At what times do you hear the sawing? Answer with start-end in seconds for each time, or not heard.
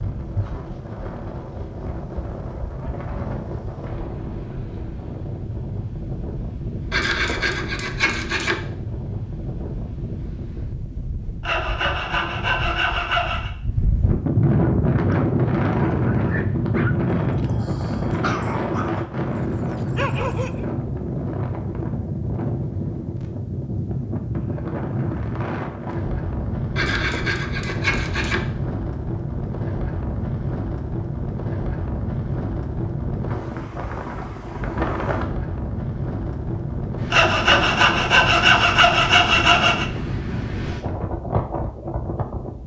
6.9-8.6, 11.4-13.5, 26.8-28.4, 37.1-39.9.